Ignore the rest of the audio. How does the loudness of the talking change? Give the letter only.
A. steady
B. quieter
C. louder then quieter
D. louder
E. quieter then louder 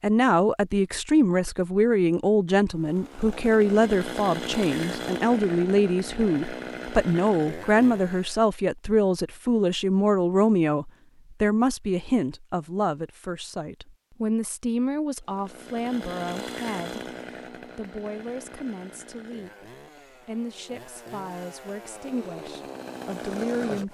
B.